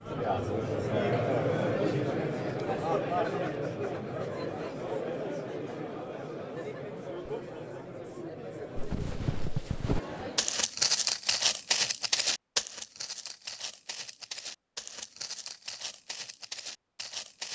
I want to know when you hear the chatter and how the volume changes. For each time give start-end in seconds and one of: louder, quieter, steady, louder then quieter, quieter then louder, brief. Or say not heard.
0.0-10.6 quieter.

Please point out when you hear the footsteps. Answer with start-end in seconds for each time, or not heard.
8.8-17.5.